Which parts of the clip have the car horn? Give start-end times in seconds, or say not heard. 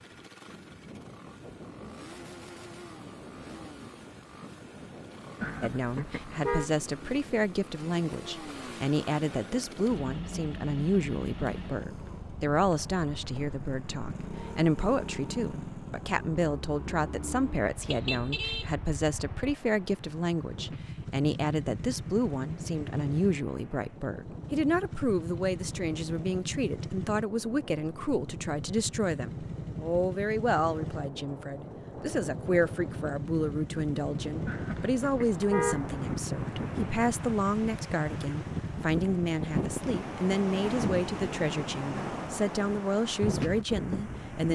5.4-6.7, 17.9-18.7, 34.5-35.9.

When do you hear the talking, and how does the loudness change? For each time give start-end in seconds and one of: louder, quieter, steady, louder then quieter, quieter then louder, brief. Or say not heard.
5.6-44.4 steady.